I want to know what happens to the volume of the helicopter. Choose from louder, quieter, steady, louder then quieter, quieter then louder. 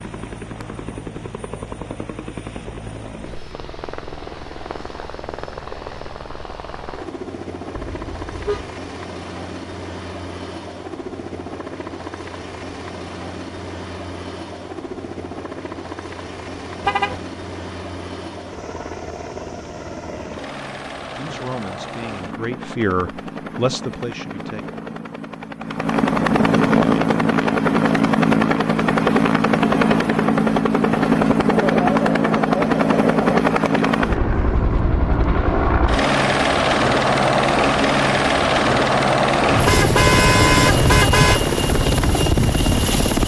louder.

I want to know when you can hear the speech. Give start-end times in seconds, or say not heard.
21.1-24.6.